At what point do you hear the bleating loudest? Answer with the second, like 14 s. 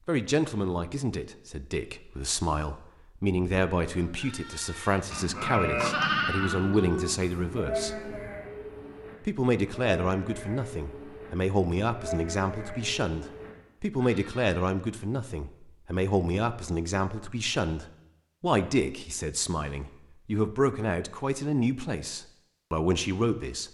6 s.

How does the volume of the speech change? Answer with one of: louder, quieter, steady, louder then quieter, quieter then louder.
steady.